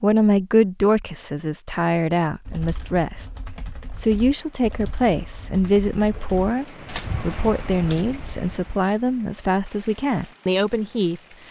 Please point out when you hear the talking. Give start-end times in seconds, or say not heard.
0.0-3.3, 4.0-11.2.